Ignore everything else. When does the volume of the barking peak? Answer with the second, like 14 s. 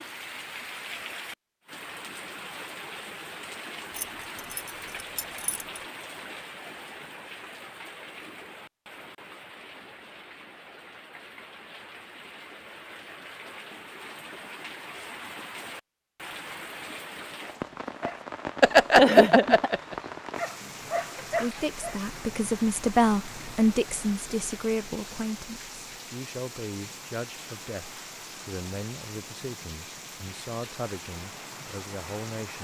19 s.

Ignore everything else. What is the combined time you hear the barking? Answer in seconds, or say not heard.
4 s.